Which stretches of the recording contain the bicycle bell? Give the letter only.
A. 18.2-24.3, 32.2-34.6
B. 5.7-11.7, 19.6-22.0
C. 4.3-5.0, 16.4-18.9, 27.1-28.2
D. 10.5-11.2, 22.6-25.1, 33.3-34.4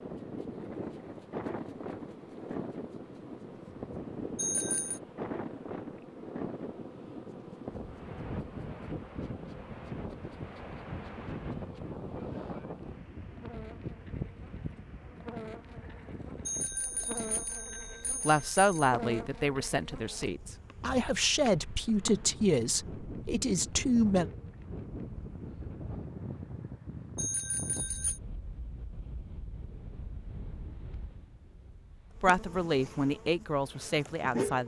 C.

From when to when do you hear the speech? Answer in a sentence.
The speech can be heard from 18.2 to 24.3 s and from 32.2 to 34.6 s.